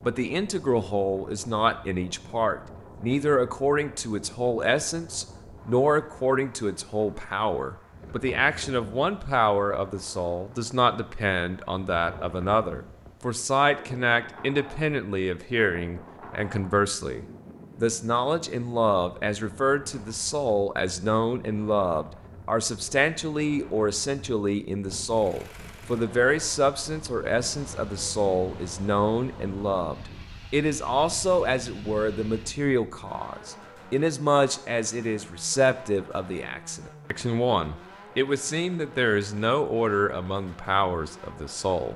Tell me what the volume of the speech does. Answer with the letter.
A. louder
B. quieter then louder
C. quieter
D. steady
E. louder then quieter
D.